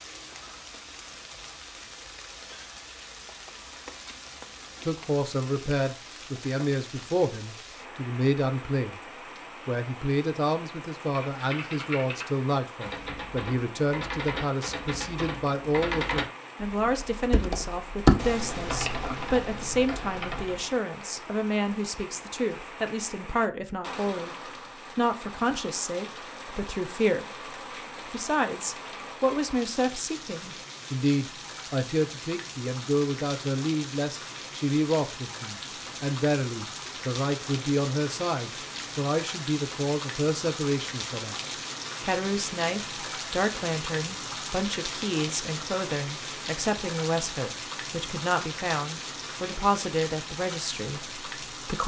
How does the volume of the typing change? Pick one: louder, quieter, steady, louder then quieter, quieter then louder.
louder then quieter.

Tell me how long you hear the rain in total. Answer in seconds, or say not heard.
52 s.